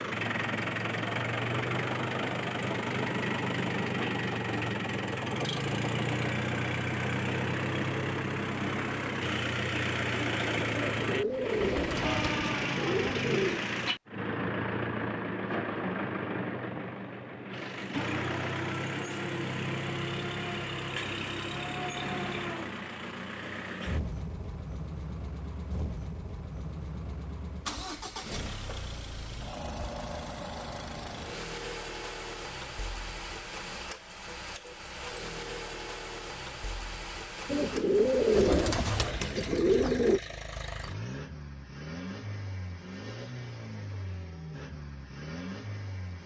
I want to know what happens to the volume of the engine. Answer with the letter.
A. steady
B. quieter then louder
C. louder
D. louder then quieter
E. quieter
E.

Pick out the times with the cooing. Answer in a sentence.
You can hear the cooing from 10.7 to 13.7 s and from 37.5 to 40.2 s.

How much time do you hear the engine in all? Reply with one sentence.
You can hear the engine for 46 seconds altogether.